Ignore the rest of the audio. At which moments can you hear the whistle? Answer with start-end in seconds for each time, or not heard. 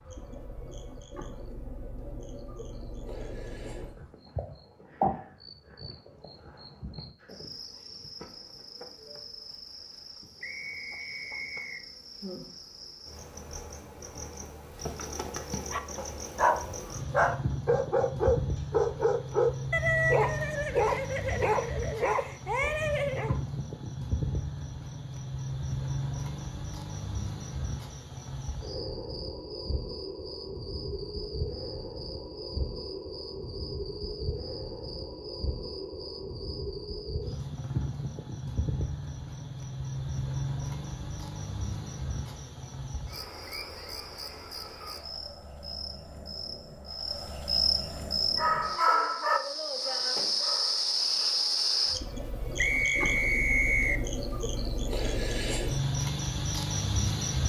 10.4-11.8, 52.5-54.0.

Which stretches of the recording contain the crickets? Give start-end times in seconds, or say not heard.
0.0-57.4.